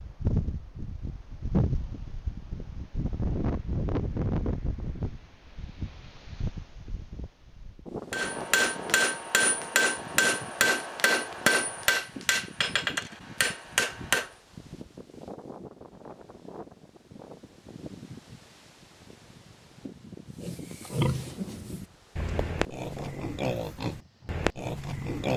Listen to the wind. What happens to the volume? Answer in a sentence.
The loudness of the wind goes down.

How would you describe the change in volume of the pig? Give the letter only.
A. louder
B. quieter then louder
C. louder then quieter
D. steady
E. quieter
B.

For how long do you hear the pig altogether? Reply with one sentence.
You can hear the pig for 5 seconds altogether.